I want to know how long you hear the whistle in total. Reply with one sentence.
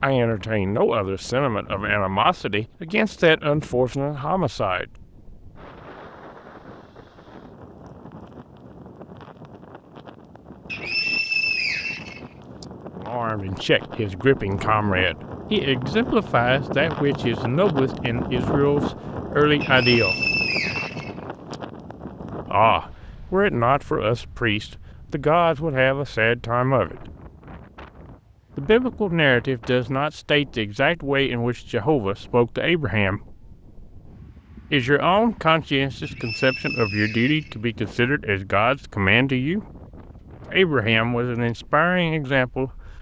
You can hear the whistle for 6 seconds altogether.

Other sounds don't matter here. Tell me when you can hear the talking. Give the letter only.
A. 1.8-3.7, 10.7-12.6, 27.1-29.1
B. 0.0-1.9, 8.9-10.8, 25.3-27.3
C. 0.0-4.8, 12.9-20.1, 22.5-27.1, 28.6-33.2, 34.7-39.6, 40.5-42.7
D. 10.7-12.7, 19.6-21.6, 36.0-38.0
C.